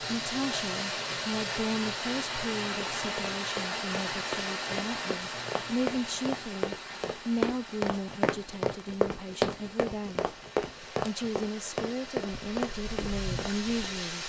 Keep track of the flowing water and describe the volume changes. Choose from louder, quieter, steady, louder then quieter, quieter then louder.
quieter then louder.